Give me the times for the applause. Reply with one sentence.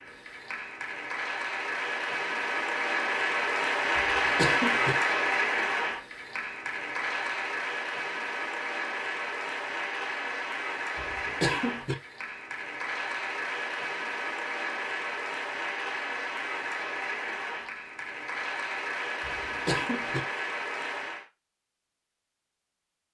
You can hear the applause from 0.0 to 21.2 s.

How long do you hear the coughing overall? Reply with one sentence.
The coughing can be heard for 3 seconds in total.